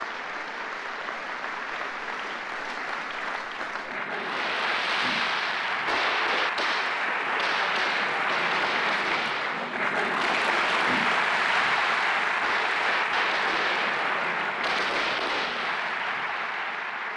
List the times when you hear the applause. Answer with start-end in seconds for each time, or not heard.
0.0-17.1.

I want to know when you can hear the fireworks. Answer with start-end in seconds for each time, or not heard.
4.1-15.9.